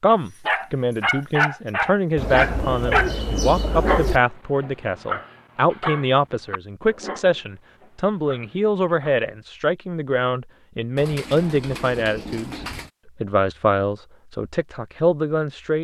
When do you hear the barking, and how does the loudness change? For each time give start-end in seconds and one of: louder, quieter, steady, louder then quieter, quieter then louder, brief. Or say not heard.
0.5-9.2 quieter.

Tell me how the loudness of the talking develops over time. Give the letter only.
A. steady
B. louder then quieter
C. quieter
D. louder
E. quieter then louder
A.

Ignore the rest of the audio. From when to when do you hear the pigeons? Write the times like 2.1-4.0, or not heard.
2.1-4.2, 10.9-12.9.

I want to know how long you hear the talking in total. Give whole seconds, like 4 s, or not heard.
16 s.